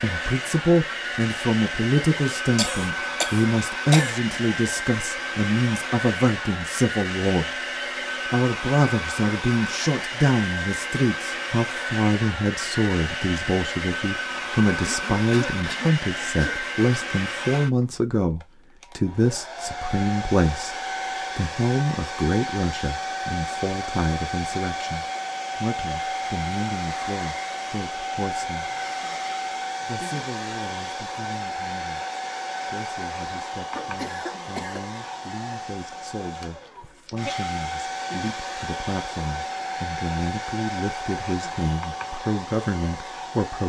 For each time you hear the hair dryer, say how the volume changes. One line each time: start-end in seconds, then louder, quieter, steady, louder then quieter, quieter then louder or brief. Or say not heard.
0.0-43.6 steady.